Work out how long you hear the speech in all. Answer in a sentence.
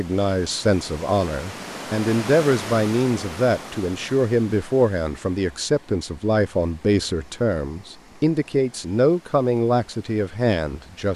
The speech can be heard for 11 seconds in total.